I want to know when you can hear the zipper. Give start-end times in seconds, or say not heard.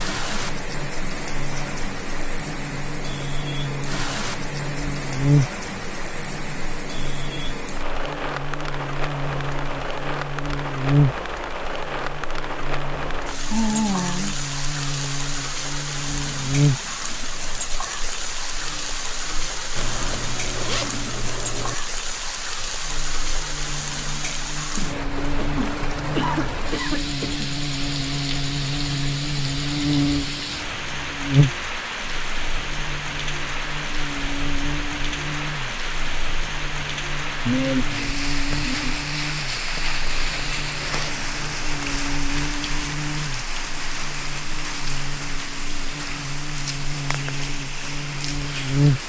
19.8-21.8, 40.0-42.0.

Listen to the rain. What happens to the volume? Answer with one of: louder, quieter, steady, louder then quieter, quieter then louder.
steady.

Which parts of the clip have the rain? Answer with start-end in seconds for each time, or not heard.
0.0-49.0.